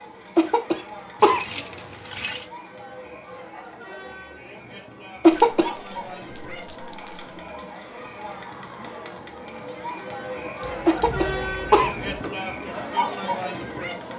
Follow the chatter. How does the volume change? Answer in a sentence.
The volume of the chatter goes up.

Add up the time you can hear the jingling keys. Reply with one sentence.
You can hear the jingling keys for 5 seconds altogether.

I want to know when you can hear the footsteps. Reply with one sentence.
You can't hear the footsteps here.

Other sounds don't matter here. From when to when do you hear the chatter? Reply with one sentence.
You can hear the chatter from 0.0 to 14.1 s.